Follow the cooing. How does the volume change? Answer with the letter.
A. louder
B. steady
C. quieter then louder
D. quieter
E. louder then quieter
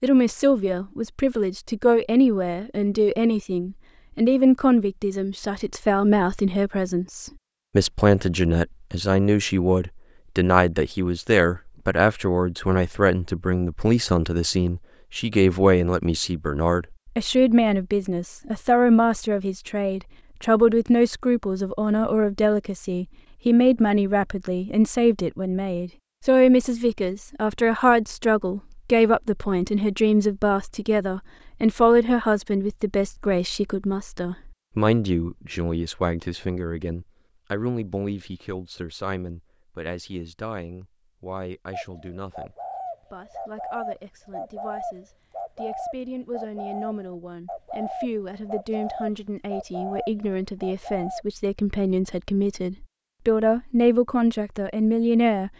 B.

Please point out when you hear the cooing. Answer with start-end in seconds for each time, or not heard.
41.7-51.2.